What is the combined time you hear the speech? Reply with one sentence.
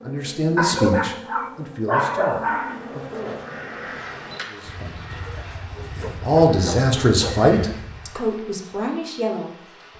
The speech can be heard for 8 seconds in total.